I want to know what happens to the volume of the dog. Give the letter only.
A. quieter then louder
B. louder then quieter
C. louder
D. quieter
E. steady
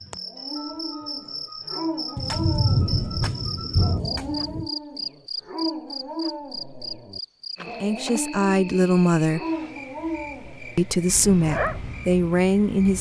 E.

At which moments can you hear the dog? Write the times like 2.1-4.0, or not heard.
0.3-11.8.